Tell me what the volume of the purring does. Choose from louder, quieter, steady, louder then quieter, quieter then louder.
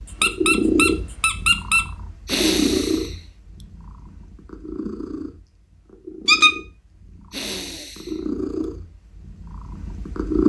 quieter then louder.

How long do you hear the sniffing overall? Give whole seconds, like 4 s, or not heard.
2 s.